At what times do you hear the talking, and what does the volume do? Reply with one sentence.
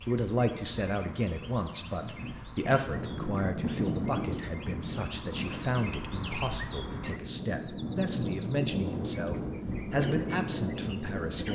You can hear the talking from 0.1 to 11.4 s, at a steady volume.